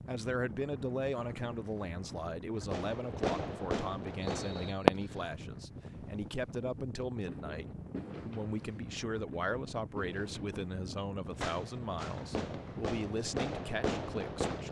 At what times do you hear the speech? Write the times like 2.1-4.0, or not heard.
0.1-14.6.